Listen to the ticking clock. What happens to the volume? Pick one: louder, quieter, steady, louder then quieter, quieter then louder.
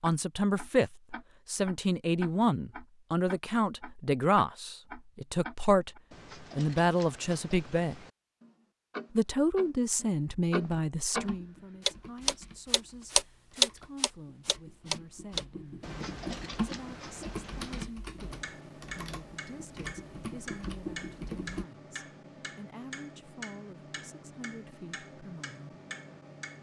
louder then quieter.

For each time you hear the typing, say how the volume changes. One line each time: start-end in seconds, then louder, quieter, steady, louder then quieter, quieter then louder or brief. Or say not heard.
10.7-21.6 quieter then louder.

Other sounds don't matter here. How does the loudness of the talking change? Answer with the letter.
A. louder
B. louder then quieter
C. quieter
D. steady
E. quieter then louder
C.